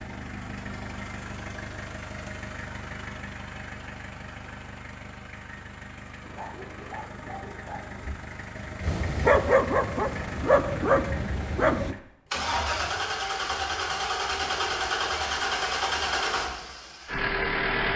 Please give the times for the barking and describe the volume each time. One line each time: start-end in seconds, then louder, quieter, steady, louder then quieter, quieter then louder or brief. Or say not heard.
6.2-11.9 louder.